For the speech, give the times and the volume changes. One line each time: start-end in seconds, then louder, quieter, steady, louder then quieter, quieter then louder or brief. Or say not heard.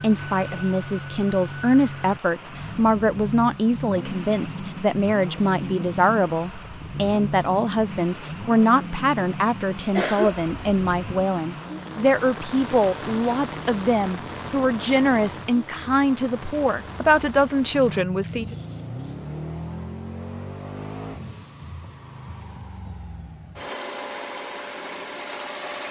0.0-18.6 steady.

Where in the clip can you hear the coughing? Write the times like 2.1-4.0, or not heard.
9.9-10.8.